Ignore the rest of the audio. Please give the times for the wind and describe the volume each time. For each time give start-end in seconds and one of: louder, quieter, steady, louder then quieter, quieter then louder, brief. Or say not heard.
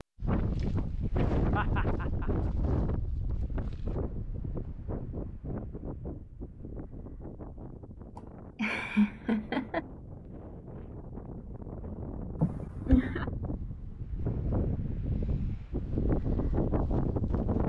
0.0-17.6 quieter then louder.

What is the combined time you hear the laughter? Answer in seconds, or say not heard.
3 s.